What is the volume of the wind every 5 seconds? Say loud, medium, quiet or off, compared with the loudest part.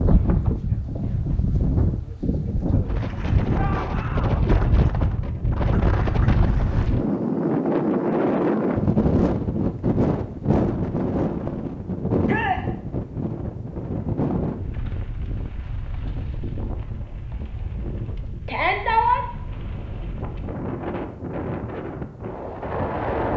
loud, loud, loud, quiet, medium.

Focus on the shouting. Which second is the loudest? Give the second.
19 s.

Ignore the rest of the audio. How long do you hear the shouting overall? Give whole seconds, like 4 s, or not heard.
2 s.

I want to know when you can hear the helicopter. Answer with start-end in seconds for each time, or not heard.
not heard.